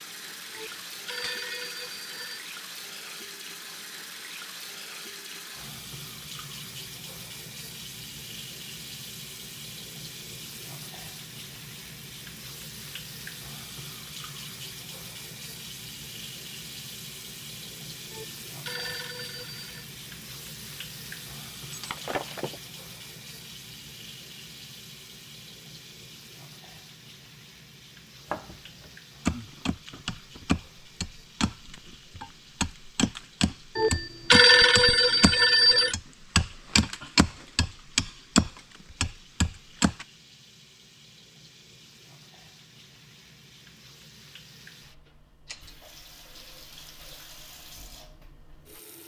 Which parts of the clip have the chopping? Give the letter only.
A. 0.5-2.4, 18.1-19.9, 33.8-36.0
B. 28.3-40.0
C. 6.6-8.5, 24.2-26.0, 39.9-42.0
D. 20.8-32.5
B.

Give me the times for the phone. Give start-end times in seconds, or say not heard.
0.5-2.4, 18.1-19.9, 33.8-36.0.